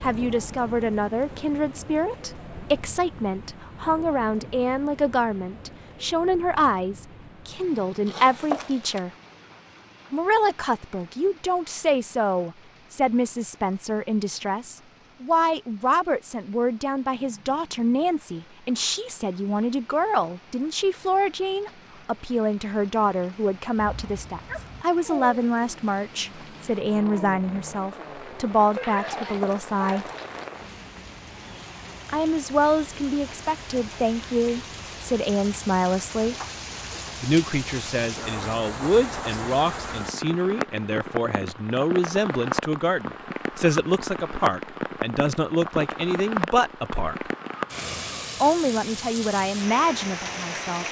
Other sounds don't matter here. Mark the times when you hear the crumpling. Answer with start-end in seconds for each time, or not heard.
8.1-9.0, 28.9-30.4.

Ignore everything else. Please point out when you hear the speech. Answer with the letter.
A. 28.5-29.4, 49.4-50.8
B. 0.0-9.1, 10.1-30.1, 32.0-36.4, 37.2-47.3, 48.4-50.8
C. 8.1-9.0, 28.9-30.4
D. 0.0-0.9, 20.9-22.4
B.